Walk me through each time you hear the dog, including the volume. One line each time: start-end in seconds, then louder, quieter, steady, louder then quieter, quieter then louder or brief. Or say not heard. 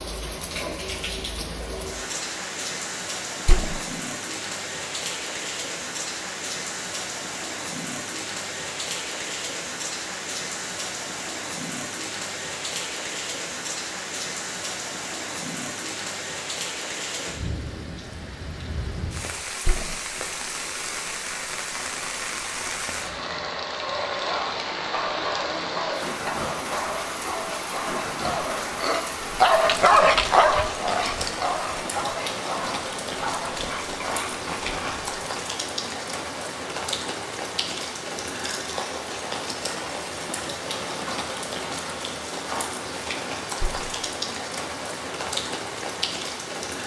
23.1-35.1 louder then quieter.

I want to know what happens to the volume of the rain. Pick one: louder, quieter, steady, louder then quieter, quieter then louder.
steady.